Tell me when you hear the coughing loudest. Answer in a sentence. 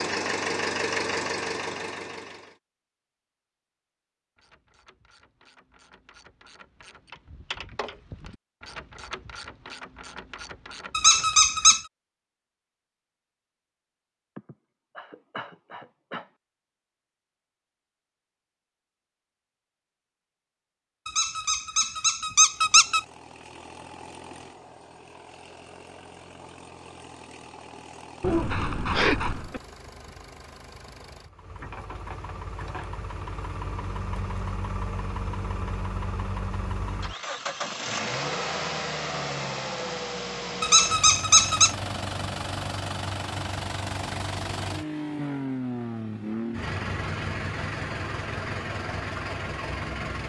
The volume of the coughing peaks at 29 seconds.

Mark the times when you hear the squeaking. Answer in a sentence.
You can hear the squeaking from 10.9 to 11.8 s, from 21.1 to 23.0 s and from 40.6 to 41.8 s.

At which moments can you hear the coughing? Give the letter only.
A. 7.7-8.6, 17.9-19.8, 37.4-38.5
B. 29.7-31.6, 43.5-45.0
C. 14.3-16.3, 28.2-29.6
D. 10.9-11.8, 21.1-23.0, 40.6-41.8
C.